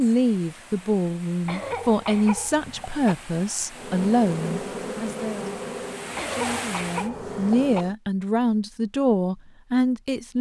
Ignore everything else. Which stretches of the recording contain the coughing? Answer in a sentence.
The coughing can be heard from 1.4 to 3.1 s and from 6.2 to 7.8 s.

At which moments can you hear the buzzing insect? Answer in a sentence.
You can hear the buzzing insect from 3.7 to 8.0 s.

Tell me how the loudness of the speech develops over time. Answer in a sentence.
The loudness of the speech stays about the same.